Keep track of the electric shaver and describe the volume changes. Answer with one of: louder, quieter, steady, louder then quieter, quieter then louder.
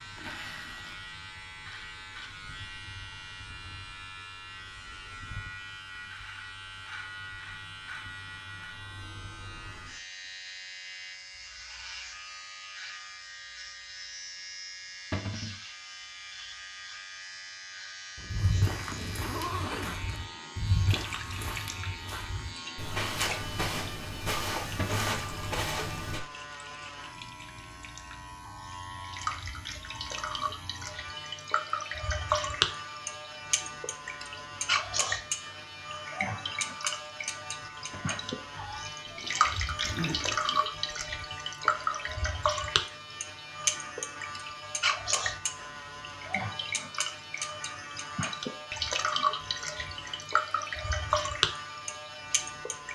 steady.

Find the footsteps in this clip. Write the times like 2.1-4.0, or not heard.
18.3-26.2.